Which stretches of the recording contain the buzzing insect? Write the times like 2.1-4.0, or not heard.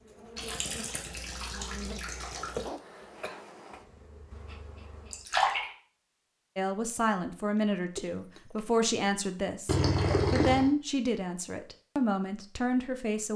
0.0-5.3.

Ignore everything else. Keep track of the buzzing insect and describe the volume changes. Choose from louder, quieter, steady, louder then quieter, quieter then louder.
louder then quieter.